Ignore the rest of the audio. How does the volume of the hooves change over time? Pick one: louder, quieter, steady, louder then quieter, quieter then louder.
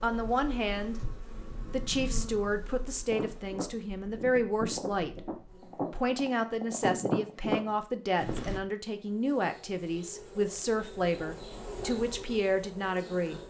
louder.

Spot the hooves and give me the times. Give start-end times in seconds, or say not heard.
3.0-8.6.